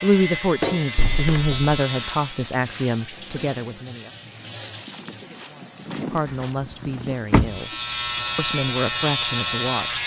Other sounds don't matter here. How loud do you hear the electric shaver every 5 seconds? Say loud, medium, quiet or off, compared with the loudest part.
medium, loud.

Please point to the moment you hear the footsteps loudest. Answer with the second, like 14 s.
6 s.